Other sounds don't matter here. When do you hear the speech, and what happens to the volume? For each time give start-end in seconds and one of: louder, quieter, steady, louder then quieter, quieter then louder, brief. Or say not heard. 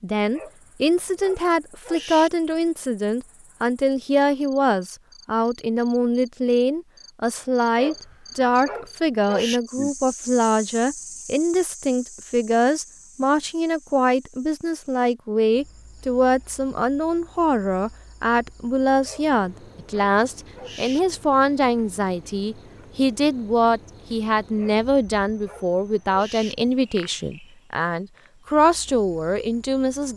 0.0-30.1 steady.